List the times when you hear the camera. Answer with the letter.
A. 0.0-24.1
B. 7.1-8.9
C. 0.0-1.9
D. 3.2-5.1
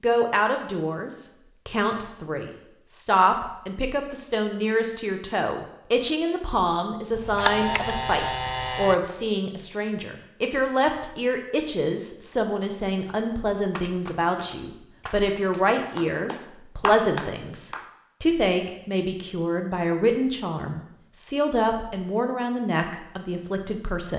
B.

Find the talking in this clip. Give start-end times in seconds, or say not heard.
0.0-24.1.